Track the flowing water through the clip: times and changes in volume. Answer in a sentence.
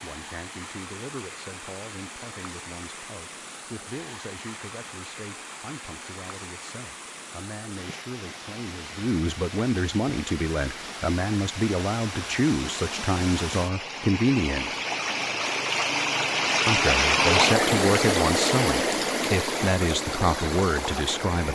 The flowing water can be heard from 0.0 to 21.5 s, getting louder.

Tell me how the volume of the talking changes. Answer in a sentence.
The loudness of the talking goes up.